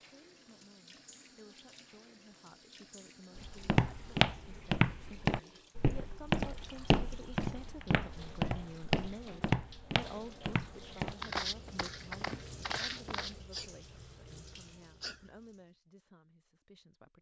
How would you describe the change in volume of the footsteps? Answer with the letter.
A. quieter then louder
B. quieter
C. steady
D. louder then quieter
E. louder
B.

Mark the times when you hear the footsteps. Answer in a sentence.
You can hear the footsteps from 3.4 to 13.4 s.